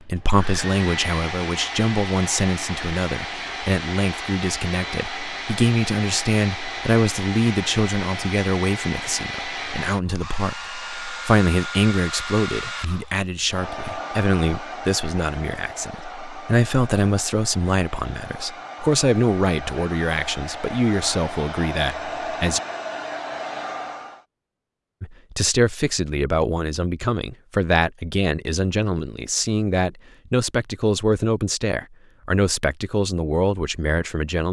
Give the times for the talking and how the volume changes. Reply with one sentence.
The talking can be heard from 0.1 to 22.6 s, at a steady volume; and from 25.0 to 34.4 s, at a steady volume.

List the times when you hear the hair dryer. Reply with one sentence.
You can hear the hair dryer from 0.0 to 24.2 s.